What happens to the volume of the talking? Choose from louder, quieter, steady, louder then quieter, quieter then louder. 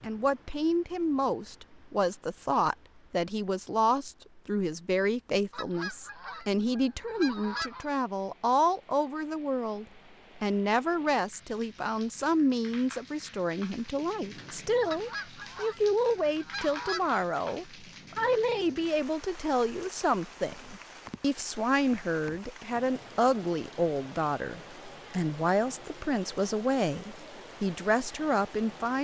steady.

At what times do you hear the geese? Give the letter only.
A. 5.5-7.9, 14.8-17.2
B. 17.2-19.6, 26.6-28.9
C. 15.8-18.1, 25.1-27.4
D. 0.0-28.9
A.